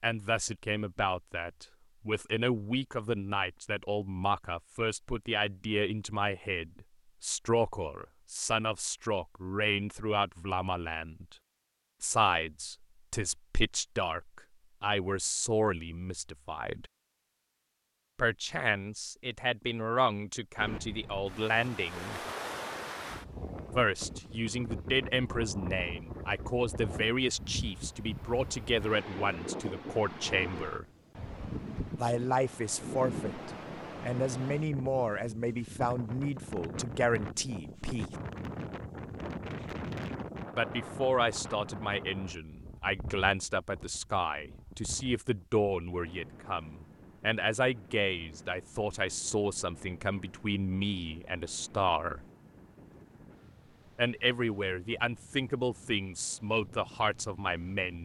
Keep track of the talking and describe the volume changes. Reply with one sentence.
The loudness of the talking stays about the same.